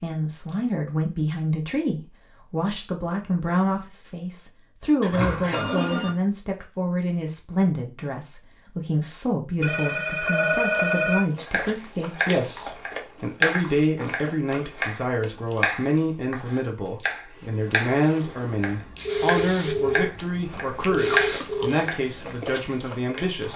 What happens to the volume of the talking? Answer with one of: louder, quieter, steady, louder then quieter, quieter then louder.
steady.